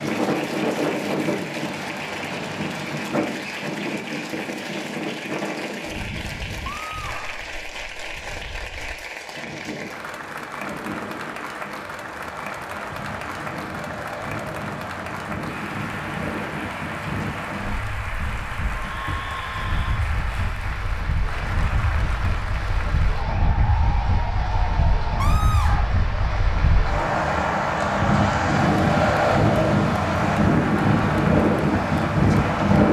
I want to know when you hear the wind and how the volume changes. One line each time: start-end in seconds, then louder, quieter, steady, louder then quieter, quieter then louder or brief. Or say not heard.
0.0-32.8 quieter then louder.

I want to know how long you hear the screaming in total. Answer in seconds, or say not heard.
3 s.